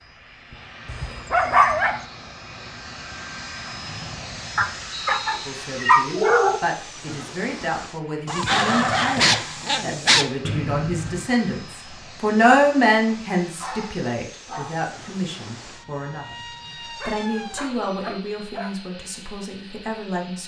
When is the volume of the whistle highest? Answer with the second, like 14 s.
11 s.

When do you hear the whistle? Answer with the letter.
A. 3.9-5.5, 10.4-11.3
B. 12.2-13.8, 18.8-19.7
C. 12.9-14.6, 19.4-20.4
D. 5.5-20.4
A.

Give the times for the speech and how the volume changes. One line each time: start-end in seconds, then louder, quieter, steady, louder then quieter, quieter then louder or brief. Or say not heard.
5.5-20.4 louder then quieter.